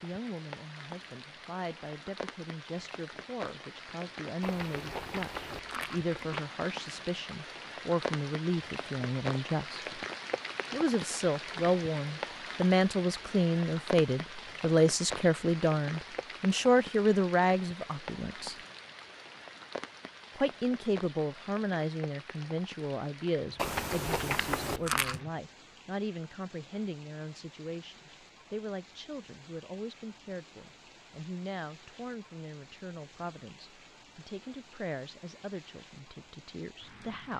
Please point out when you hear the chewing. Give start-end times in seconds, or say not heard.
4.4-6.4, 23.6-25.2.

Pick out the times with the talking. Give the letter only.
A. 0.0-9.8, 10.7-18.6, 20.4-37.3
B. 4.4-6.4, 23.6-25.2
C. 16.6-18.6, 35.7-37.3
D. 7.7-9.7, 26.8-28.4
A.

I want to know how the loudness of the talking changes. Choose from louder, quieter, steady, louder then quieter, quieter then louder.
louder then quieter.